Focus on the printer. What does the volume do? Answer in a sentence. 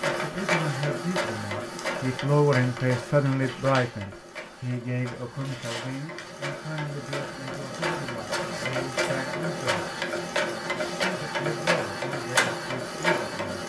The loudness of the printer goes down, then up.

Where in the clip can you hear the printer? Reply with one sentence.
You can hear the printer from 0.0 to 13.6 s.